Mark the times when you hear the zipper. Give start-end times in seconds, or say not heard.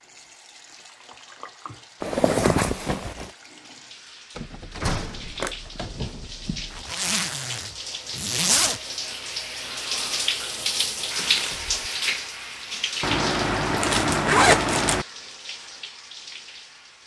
2.0-3.3, 6.7-8.8, 13.0-15.1.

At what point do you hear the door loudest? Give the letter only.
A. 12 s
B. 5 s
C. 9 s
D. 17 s
B.